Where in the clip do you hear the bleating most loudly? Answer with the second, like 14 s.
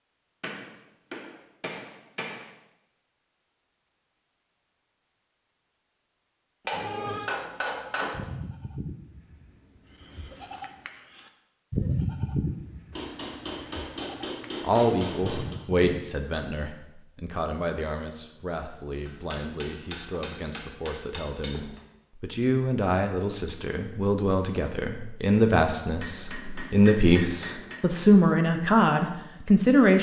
12 s.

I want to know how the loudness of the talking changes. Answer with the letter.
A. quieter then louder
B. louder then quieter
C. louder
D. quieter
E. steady
A.